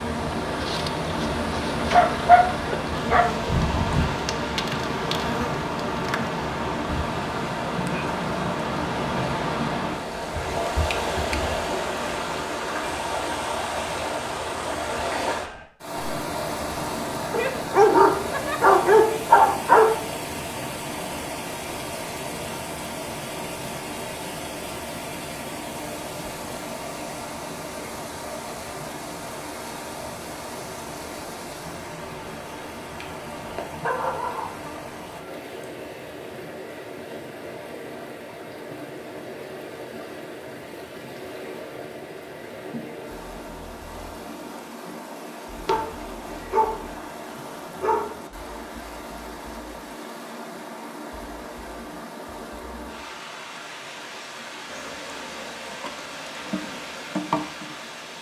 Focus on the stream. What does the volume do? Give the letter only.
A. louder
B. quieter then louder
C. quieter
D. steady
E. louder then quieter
C.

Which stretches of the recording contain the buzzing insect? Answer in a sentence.
The buzzing insect can be heard from 0.0 to 12.5 s and from 54.6 to 58.1 s.